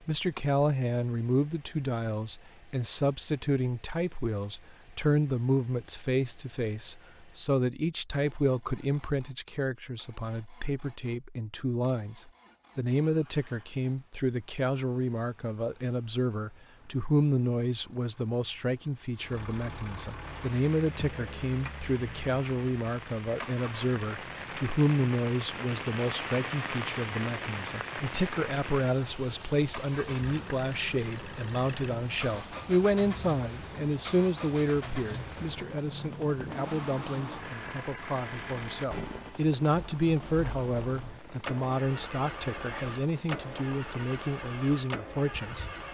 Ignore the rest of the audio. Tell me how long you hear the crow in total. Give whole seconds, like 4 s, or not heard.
not heard.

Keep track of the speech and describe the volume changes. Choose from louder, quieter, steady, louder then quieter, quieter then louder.
steady.